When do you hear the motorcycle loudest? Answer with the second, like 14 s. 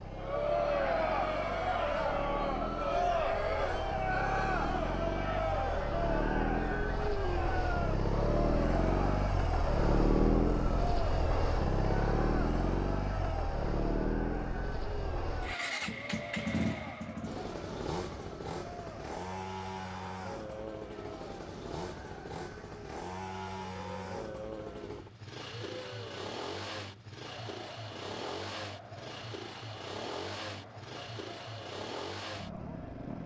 10 s.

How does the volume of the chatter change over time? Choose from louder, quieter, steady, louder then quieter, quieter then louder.
quieter.